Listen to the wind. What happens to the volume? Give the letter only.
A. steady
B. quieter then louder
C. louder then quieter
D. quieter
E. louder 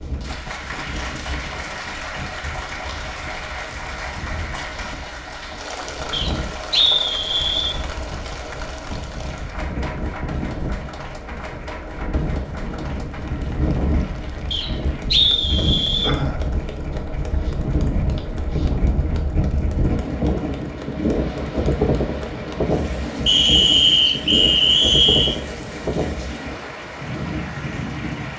E.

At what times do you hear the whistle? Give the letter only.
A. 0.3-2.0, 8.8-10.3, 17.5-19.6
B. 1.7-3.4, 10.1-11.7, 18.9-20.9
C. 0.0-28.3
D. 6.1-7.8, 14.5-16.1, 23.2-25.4
D.